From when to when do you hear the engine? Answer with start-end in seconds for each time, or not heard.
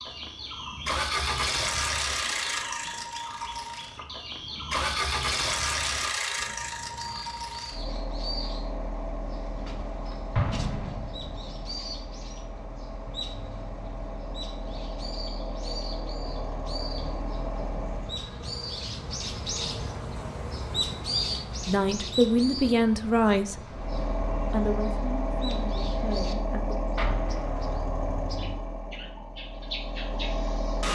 0.1-18.2, 23.7-30.8.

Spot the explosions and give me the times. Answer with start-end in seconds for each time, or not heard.
10.3-11.7, 26.9-27.8.